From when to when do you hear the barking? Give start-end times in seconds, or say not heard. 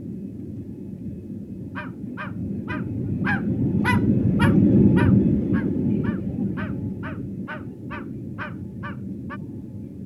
1.8-9.4.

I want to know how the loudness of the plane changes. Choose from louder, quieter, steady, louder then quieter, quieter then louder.
louder then quieter.